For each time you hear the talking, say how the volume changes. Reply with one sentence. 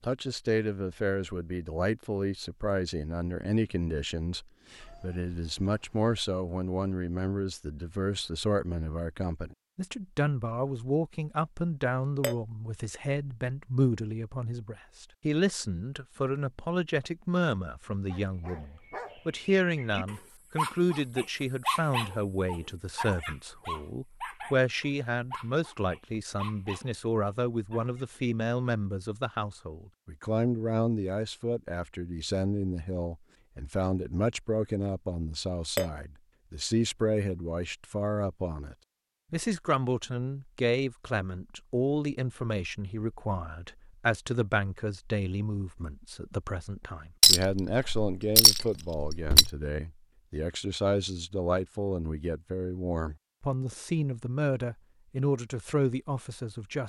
You can hear the talking from 0.0 to 56.8 s, at a steady volume.